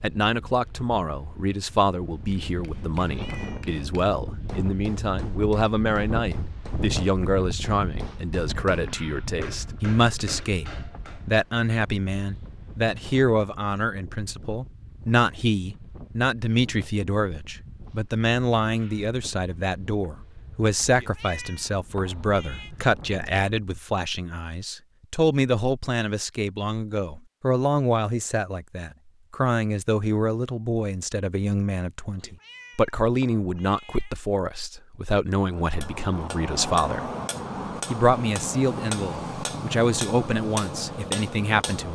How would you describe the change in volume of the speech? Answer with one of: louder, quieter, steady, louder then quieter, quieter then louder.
steady.